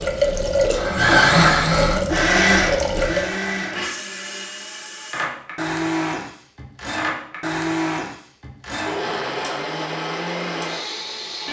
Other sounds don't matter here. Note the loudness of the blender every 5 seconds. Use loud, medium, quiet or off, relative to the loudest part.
loud, medium, medium.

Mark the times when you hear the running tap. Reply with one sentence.
You can hear the running tap from 0.0 to 3.4 s.